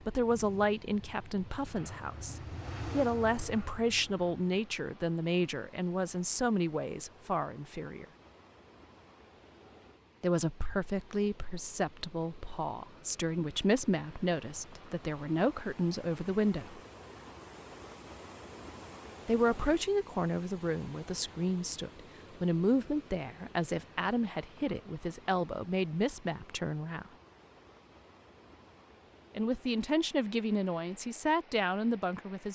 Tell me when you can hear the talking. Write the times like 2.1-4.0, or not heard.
0.1-8.1, 10.2-16.8, 19.2-27.1, 29.4-32.5.